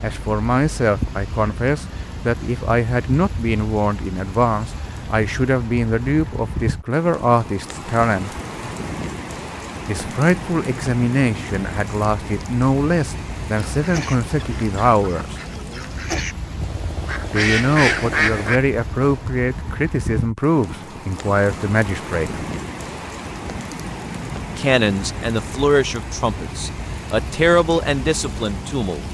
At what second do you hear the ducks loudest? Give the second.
18 s.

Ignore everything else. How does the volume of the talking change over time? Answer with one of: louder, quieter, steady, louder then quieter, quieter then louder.
steady.